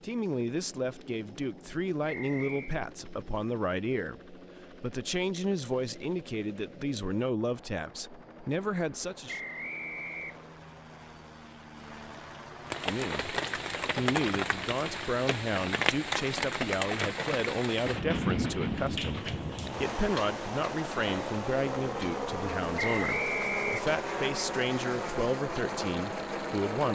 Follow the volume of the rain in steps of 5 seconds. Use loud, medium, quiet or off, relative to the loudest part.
off, off, loud, loud, medium, medium.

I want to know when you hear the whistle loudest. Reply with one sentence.
The loudest moment of the whistle is at 23 seconds.